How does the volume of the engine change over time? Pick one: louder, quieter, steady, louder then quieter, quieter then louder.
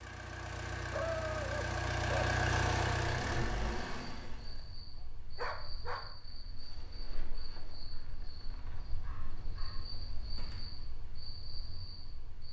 louder then quieter.